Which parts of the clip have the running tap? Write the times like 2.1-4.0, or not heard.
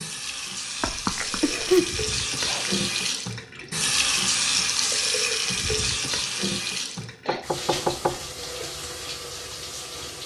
0.0-10.2.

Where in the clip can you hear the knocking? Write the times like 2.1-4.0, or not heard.
0.8-1.9, 7.0-8.2.